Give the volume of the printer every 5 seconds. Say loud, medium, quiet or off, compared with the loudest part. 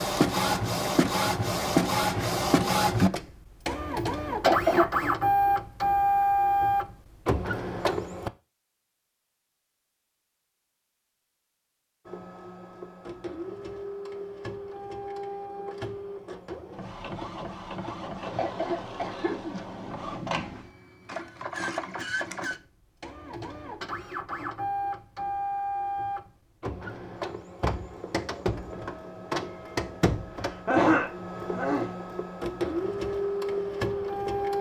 loud, loud, quiet, quiet, medium, medium, medium.